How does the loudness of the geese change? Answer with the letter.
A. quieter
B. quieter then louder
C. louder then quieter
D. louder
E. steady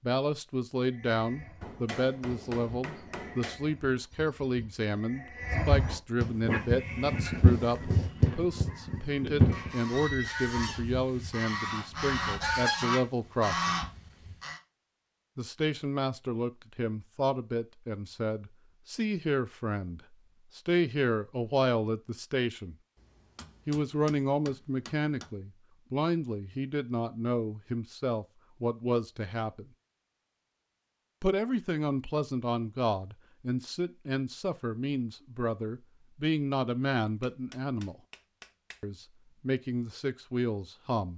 D.